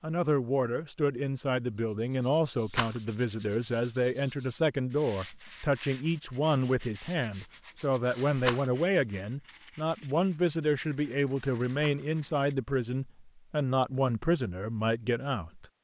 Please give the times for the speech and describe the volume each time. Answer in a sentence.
You can hear the speech from 0.0 to 15.7 s, at a steady volume.